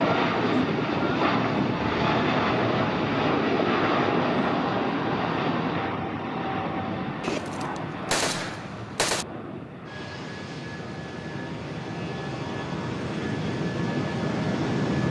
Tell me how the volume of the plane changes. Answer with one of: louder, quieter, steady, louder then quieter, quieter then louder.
quieter then louder.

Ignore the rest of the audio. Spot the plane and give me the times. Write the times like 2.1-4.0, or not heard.
0.0-15.0.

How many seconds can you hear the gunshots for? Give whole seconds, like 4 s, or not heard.
2 s.